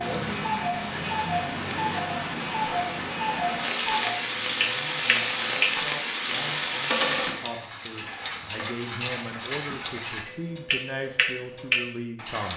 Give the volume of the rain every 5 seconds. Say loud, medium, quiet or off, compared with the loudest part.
loud, loud, off.